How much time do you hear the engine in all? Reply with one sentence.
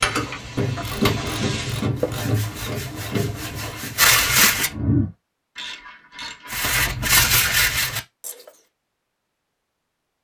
You can hear the engine for 2 seconds altogether.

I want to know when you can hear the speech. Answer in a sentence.
You can't hear the speech here.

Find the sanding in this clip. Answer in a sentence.
The sanding can be heard from 1.9 to 4.7 s and from 6.5 to 8.5 s.